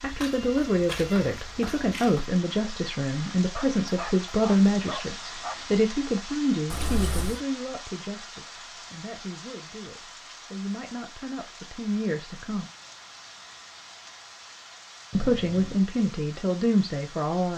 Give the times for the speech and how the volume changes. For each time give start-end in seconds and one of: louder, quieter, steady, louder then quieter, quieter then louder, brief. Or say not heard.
0.0-12.7 quieter then louder
15.2-17.5 brief.